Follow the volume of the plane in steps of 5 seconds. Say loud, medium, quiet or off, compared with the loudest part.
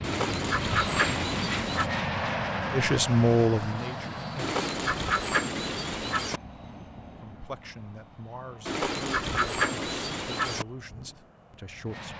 loud, quiet, quiet.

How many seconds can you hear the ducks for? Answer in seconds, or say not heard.
6 s.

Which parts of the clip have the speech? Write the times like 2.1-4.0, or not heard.
2.7-4.6, 7.2-12.1.